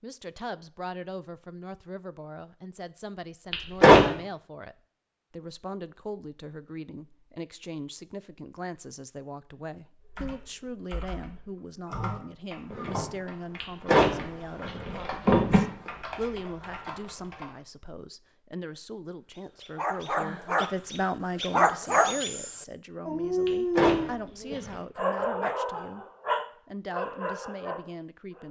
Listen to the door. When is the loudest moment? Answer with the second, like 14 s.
4 s.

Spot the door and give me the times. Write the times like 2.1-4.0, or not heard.
3.5-4.1, 13.6-15.6, 23.4-24.8.